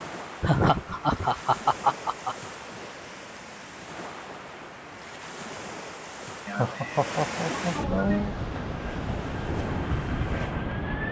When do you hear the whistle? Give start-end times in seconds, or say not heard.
not heard.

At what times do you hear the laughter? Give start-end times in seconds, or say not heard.
0.4-2.4, 6.5-8.3.